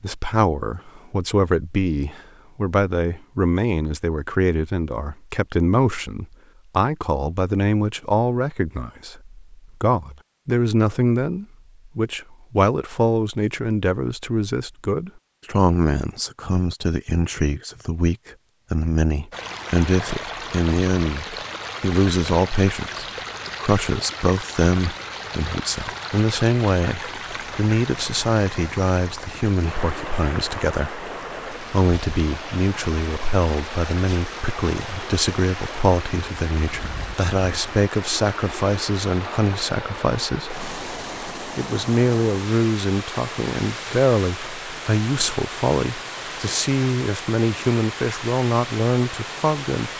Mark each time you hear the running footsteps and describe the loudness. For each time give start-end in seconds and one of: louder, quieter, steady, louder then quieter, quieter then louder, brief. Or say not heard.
not heard.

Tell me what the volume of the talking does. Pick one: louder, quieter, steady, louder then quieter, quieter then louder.
steady.